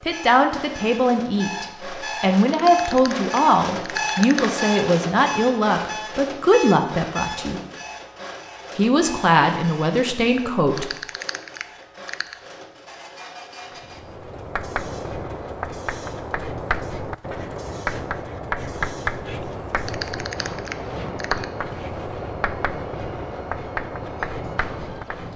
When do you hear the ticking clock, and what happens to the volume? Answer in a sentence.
The ticking clock can't be heard in this clip.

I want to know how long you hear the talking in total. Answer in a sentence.
The talking can be heard for 10 seconds in total.